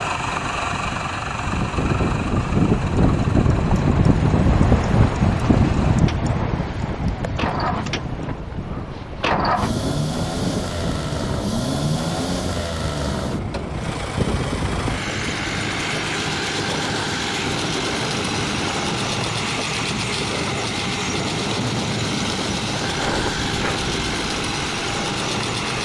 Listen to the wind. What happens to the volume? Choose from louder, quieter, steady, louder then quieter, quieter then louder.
quieter.